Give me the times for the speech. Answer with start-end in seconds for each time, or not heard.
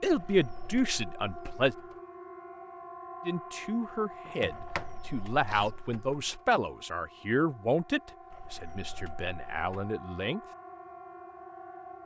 0.0-1.8, 3.2-10.4.